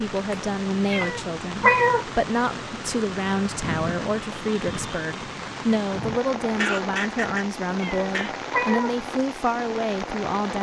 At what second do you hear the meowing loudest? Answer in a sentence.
The loudest moment of the meowing is at 2 seconds.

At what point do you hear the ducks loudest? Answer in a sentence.
The loudest moment of the ducks is at 7 seconds.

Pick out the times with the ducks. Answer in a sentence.
The ducks can be heard from 5.9 to 8.3 s.